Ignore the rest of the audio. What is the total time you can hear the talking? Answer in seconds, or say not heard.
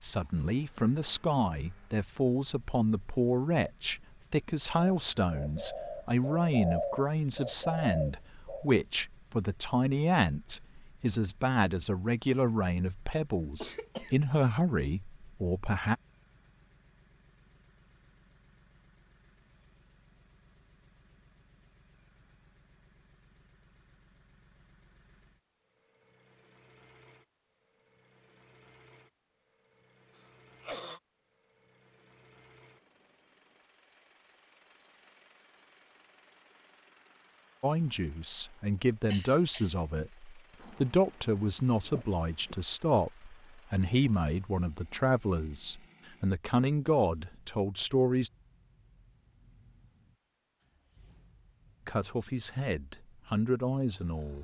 29 s.